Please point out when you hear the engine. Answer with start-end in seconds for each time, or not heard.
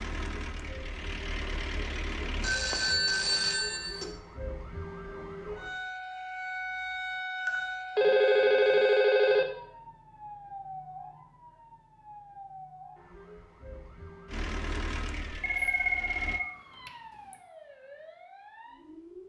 0.0-2.5, 14.2-16.4.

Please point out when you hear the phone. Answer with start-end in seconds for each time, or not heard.
2.4-4.1, 7.5-9.4, 15.4-17.4.